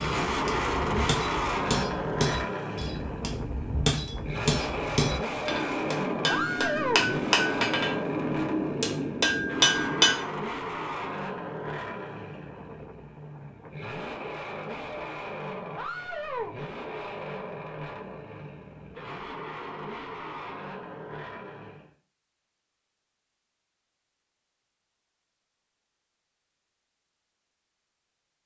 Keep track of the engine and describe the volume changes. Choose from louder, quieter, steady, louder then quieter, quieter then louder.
quieter.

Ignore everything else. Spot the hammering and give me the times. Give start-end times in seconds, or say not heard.
0.2-10.2.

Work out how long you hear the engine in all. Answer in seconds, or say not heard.
22 s.